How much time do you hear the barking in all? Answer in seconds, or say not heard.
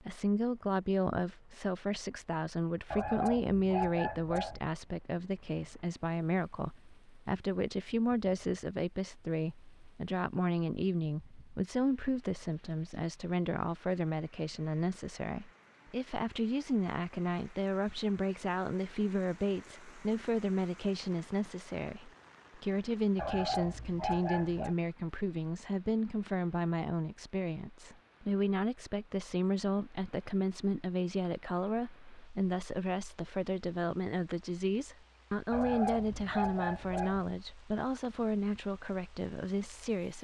5 s.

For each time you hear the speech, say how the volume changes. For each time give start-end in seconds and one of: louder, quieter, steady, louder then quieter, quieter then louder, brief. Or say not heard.
0.0-40.2 steady.